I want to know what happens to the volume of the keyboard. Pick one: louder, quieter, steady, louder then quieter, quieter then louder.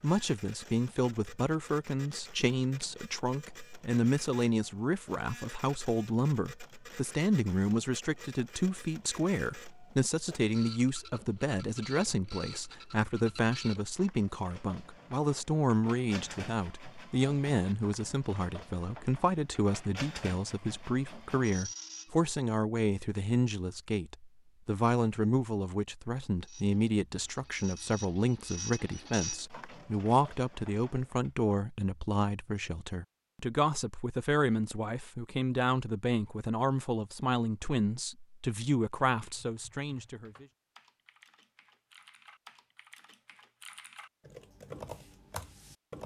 louder.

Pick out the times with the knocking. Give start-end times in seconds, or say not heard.
not heard.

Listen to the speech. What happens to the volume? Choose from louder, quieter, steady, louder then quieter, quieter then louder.
steady.